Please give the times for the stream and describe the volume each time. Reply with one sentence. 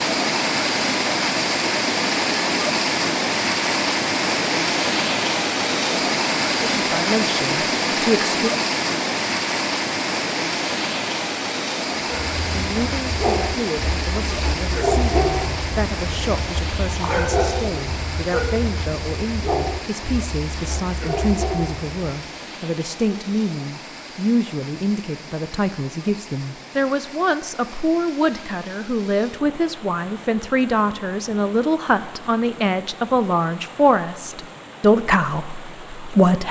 You can hear the stream from 0.0 to 36.4 s, getting quieter.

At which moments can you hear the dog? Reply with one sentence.
The dog can be heard from 11.9 to 21.9 s.